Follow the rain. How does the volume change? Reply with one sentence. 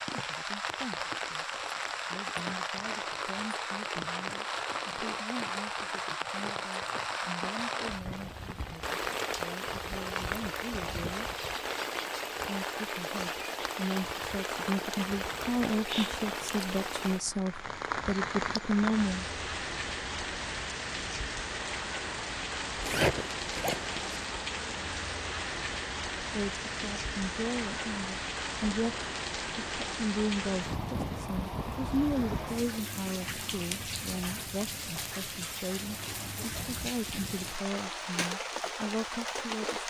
The volume of the rain stays about the same.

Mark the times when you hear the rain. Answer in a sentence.
The rain can be heard from 0.0 to 39.8 s.